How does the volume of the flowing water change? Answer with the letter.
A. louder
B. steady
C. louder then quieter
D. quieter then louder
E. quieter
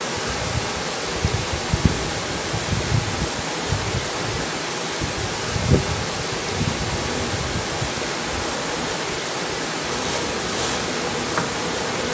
B.